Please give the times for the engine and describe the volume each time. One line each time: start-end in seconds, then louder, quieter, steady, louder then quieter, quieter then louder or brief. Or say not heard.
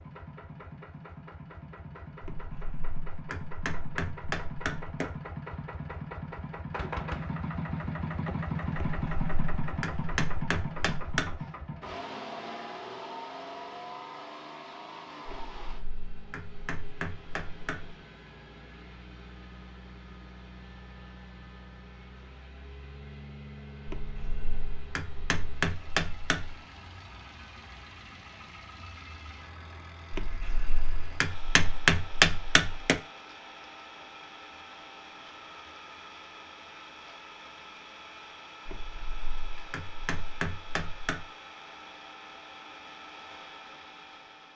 0.0-44.5 quieter.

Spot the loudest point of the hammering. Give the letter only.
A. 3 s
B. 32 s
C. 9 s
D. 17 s
B.